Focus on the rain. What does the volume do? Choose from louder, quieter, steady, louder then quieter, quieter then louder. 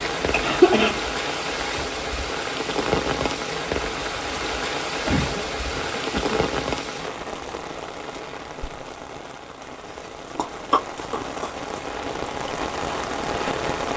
quieter then louder.